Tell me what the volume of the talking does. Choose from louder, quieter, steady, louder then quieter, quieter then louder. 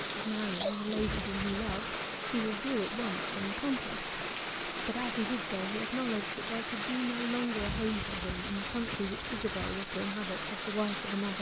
steady.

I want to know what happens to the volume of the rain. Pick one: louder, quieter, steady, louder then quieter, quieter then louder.
steady.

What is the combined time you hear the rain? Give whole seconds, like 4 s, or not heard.
11 s.